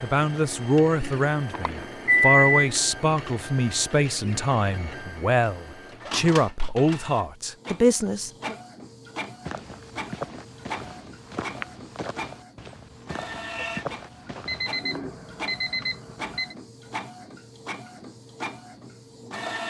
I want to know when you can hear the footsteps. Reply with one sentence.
The footsteps can be heard from 9.4 to 14.7 s.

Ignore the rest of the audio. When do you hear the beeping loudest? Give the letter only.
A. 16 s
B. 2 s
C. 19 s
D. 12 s
B.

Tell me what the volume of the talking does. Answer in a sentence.
The volume of the talking stays about the same.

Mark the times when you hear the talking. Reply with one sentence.
The talking can be heard from 0.0 to 8.6 s.